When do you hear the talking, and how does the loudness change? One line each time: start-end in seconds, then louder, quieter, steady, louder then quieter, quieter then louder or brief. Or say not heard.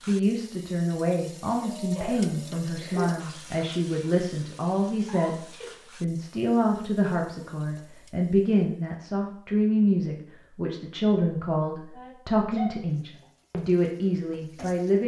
0.1-15.0 steady.